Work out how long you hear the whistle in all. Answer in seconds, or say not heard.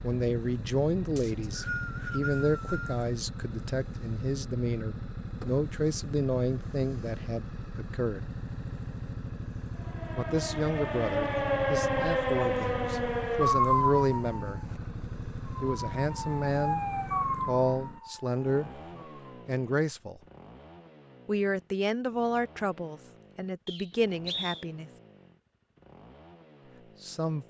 3 s.